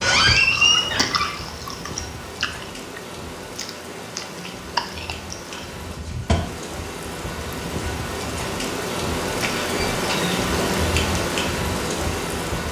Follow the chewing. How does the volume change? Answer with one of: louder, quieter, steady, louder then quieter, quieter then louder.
quieter then louder.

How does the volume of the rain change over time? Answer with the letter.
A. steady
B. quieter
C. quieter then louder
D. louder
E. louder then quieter
D.